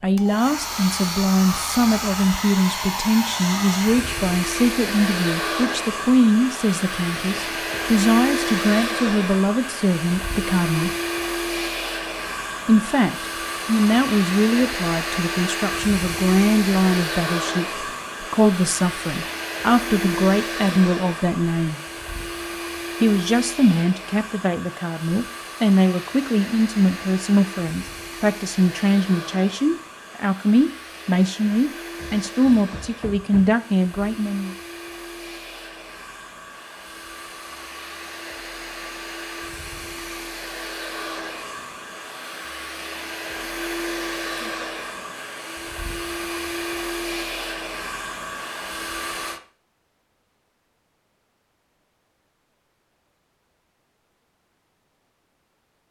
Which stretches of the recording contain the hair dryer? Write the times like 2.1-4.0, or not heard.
0.1-49.4.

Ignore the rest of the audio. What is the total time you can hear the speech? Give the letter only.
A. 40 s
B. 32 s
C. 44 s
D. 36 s
B.